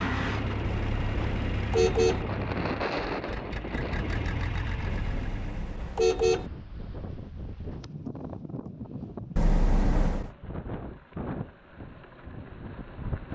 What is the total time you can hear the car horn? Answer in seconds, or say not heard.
4 s.